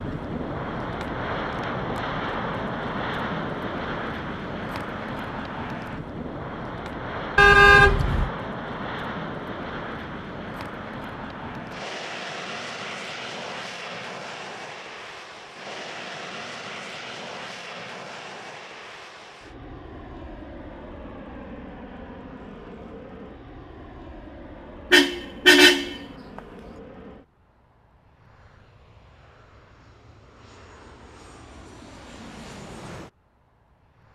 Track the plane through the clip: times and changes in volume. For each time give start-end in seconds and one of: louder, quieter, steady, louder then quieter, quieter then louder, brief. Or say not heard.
0.0-34.1 quieter.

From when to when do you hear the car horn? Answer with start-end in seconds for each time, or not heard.
7.3-8.3, 24.9-26.0.